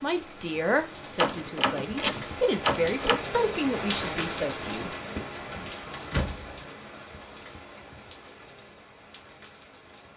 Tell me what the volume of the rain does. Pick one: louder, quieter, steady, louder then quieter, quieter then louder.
louder then quieter.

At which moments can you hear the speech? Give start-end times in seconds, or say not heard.
0.0-5.0.